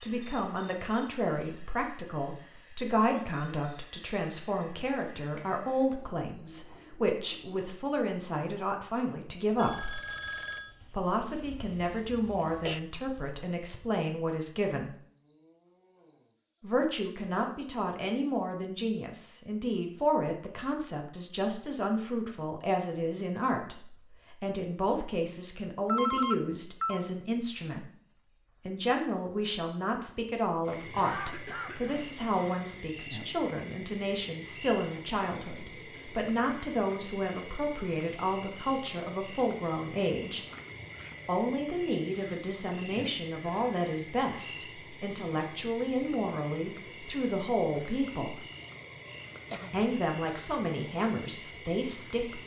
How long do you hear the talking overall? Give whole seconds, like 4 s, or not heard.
47 s.